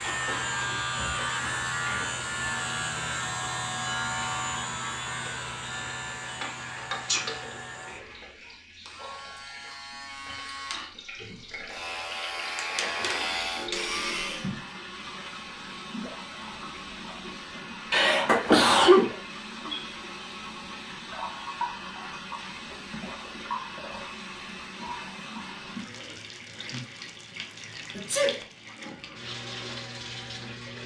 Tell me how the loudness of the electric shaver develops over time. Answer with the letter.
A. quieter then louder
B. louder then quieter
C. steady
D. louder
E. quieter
A.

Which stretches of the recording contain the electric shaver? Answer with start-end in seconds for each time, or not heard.
0.0-14.5.